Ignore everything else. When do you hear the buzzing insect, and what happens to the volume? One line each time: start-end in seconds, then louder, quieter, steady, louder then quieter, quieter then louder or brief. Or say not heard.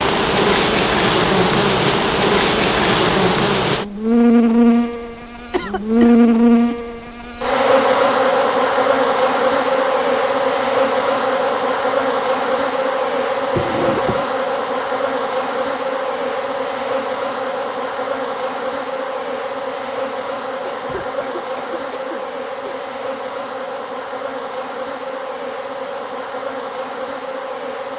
0.0-27.9 quieter.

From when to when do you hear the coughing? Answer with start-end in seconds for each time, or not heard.
5.5-6.8, 13.5-14.3, 20.8-22.9.